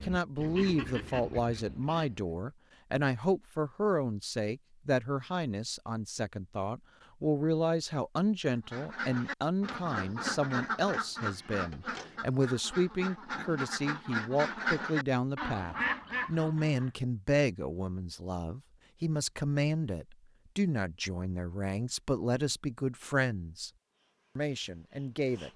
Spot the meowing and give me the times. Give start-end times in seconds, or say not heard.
not heard.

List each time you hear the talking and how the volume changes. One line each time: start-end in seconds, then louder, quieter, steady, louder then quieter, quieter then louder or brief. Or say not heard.
0.0-23.7 steady
24.4-25.5 brief.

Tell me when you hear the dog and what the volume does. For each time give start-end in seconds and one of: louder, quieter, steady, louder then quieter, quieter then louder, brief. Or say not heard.
not heard.